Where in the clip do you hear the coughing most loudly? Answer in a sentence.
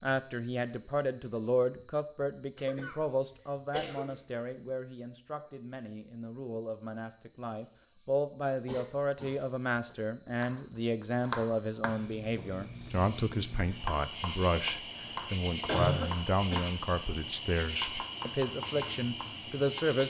The loudest moment of the coughing is at 16 seconds.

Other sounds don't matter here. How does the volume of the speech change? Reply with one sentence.
The volume of the speech goes down, then up.